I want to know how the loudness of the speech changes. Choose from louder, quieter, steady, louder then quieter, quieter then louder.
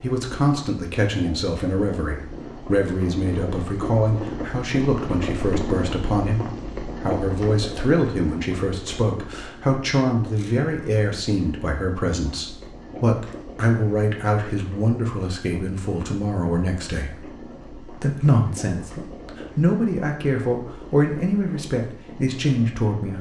steady.